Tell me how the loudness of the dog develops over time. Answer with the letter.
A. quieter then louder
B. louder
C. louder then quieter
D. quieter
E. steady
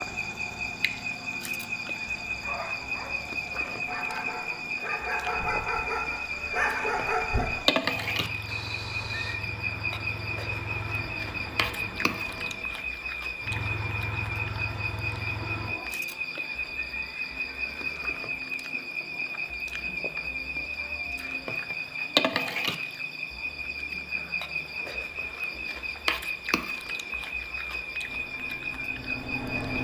B.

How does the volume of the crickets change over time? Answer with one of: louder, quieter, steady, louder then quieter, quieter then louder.
steady.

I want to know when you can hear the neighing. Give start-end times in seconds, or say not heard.
8.4-9.4, 16.1-18.1.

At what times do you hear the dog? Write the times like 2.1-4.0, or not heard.
2.2-7.7.